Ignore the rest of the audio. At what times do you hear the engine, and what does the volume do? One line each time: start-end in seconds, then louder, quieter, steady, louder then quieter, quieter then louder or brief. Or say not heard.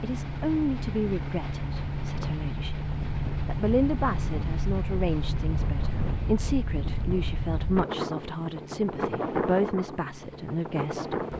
0.0-11.3 quieter.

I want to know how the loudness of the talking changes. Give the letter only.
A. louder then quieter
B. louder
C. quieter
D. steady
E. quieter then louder
D.